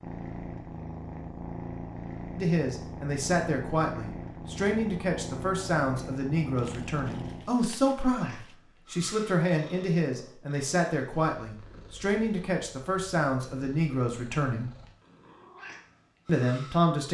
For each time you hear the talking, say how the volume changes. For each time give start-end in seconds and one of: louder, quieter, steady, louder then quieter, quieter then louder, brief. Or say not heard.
2.4-14.7 steady
16.2-17.0 brief.